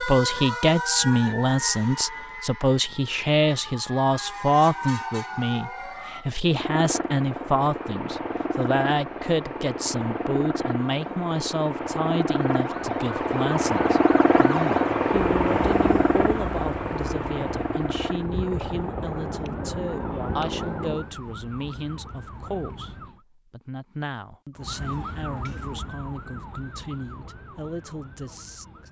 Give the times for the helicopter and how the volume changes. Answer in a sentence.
The helicopter can be heard from 6.5 to 21.1 s, getting louder then quieter.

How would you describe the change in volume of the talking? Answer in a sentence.
The volume of the talking goes down.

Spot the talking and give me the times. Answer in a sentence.
The talking can be heard from 0.0 to 28.8 s.